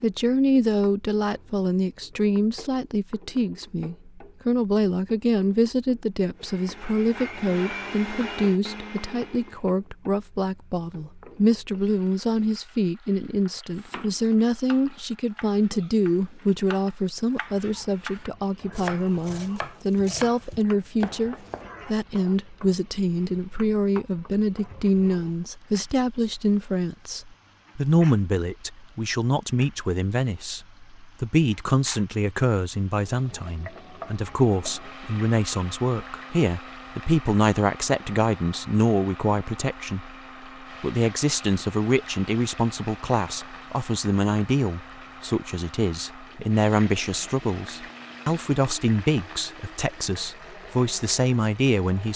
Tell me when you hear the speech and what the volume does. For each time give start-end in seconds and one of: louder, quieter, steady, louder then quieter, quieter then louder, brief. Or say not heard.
0.0-52.1 steady.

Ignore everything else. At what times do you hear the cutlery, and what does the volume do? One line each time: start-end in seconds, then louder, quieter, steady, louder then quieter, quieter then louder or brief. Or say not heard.
not heard.